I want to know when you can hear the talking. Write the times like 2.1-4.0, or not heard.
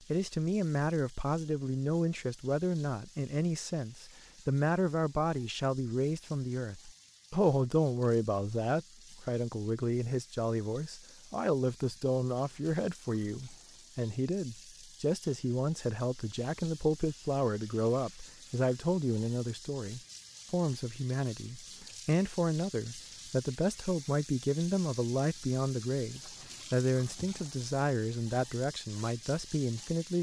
0.1-30.1.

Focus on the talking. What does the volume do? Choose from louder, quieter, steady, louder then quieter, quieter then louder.
steady.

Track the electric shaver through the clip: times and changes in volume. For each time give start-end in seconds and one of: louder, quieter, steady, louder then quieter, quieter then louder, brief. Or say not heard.
not heard.